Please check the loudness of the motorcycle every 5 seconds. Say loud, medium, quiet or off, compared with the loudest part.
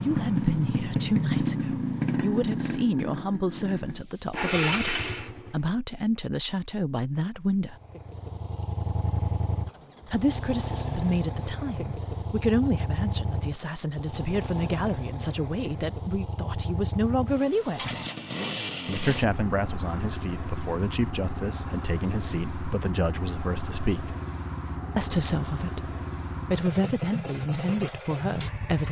loud, medium, medium, medium, medium, medium.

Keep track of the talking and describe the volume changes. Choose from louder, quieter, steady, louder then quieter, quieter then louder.
steady.